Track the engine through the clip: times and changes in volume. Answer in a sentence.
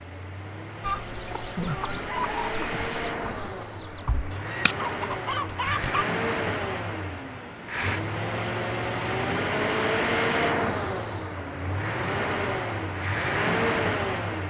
You can hear the engine from 0.0 to 14.4 s, getting louder.